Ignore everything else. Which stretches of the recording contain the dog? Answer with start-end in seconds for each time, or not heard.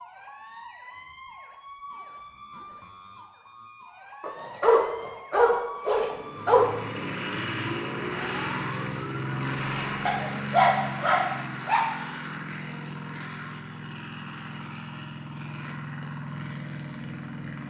4.2-6.7, 10.1-11.8.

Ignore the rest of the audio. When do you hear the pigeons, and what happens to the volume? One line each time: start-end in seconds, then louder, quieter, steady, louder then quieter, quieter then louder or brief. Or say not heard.
not heard.